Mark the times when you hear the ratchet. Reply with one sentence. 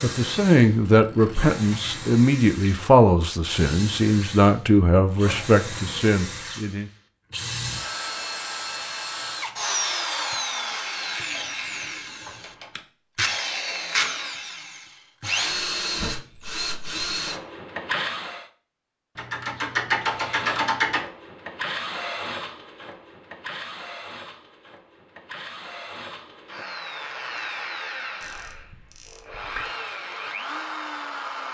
You can hear the ratchet from 0.7 to 2.1 s, from 11.3 to 12.8 s, from 19.1 to 21.1 s and from 28.2 to 29.7 s.